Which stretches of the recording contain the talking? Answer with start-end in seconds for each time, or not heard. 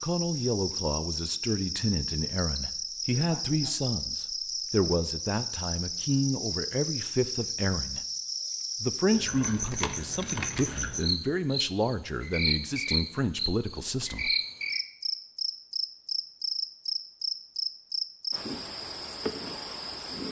0.0-8.0, 8.8-14.3.